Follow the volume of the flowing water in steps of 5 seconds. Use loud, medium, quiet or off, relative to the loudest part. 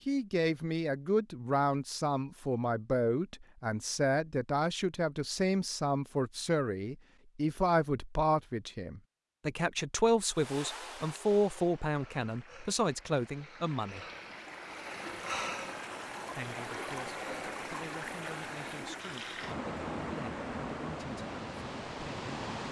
off, off, medium, loud, loud.